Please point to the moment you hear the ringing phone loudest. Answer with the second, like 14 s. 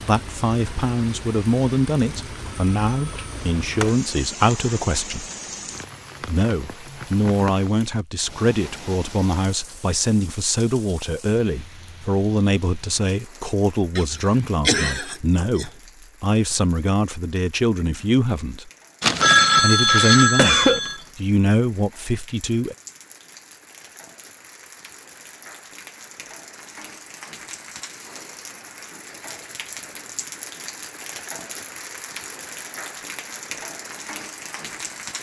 19 s.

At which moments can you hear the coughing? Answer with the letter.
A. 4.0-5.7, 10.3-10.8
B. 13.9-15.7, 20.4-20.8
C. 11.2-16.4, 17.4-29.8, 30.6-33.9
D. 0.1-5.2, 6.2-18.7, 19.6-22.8
B.